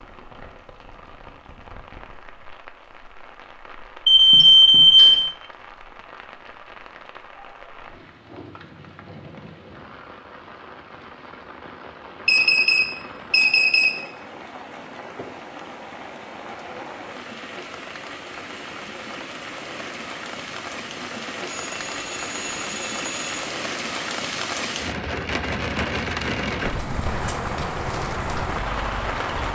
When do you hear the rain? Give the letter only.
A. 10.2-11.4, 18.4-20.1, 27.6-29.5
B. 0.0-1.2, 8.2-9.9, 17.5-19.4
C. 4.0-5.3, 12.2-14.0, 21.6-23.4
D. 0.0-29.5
D.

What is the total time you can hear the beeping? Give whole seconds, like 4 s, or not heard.
5 s.